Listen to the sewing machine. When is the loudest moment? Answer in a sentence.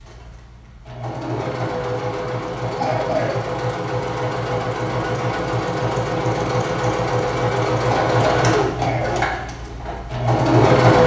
The loudest moment of the sewing machine is at 11 seconds.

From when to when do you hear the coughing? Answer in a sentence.
You can hear the coughing from 2.8 to 3.4 s and from 7.8 to 9.2 s.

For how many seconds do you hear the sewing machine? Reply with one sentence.
The sewing machine can be heard for 11 seconds in total.